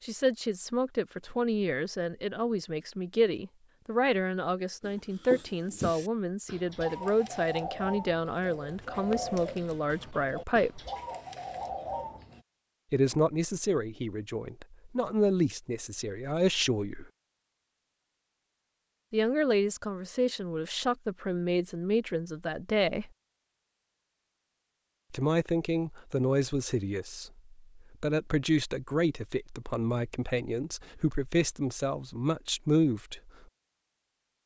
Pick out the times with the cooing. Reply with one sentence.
The cooing can be heard from 4.8 to 12.4 s.